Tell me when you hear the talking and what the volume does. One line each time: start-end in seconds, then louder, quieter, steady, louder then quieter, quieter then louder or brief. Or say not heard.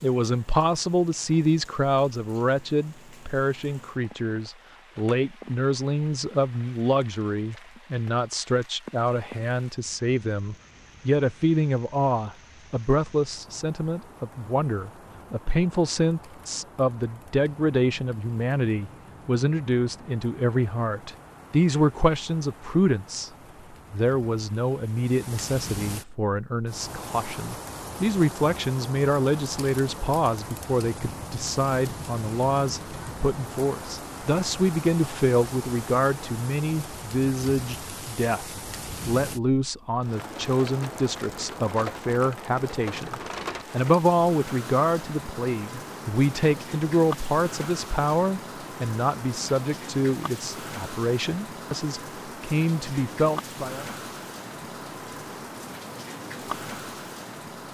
0.0-53.9 steady.